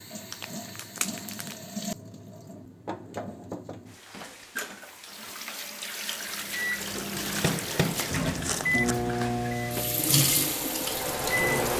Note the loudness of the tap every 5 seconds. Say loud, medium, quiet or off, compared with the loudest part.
medium, medium, loud.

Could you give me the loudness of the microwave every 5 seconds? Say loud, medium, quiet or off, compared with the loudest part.
off, loud, loud.